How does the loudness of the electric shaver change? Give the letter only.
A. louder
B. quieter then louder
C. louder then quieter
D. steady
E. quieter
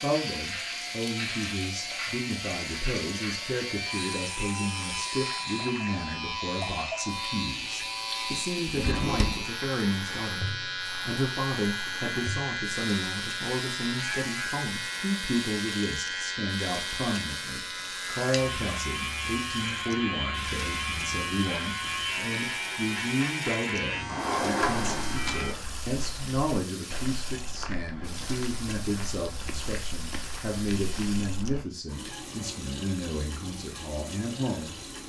D.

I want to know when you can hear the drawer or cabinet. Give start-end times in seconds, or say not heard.
8.7-9.5, 24.1-25.1.